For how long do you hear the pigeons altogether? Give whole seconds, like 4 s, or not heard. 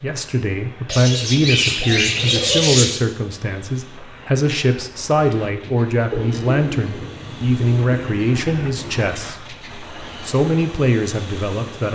5 s.